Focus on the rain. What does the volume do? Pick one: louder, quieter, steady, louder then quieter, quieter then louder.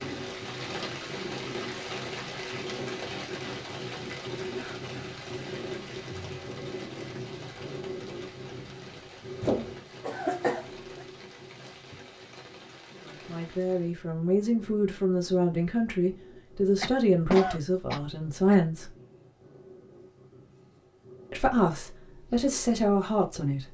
quieter.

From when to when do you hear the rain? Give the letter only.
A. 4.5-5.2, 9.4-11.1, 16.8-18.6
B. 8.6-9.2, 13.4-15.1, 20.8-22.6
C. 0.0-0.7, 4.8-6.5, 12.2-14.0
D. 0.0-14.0
D.